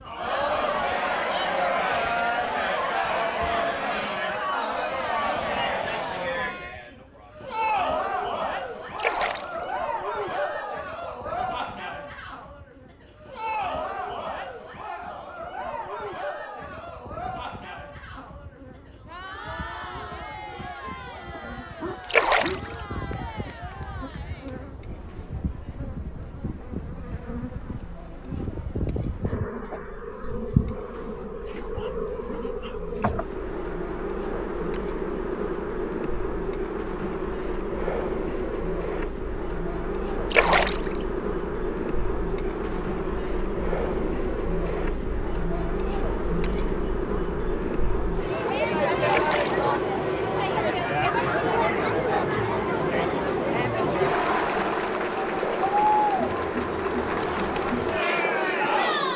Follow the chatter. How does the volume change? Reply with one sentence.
The volume of the chatter goes down, then up.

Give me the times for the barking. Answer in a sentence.
You can hear the barking from 9.6 to 11.5 s, from 21.3 to 22.6 s and from 51.0 to 52.5 s.